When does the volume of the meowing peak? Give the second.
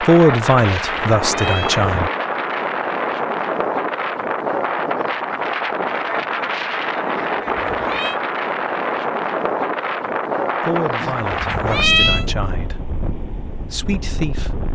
12 s.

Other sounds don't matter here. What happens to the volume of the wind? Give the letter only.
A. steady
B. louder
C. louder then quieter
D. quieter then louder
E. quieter
E.